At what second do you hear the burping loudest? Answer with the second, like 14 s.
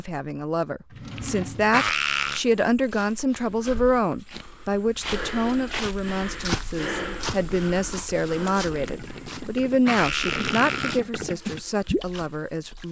2 s.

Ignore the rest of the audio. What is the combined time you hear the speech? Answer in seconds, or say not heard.
13 s.